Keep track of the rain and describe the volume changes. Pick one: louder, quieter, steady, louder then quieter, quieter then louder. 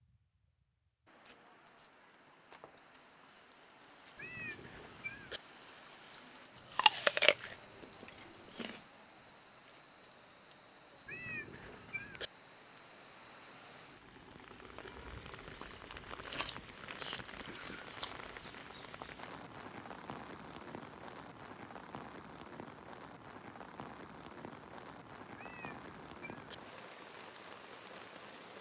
louder.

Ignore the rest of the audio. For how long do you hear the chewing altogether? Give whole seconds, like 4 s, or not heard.
4 s.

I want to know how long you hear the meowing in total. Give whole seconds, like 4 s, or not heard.
4 s.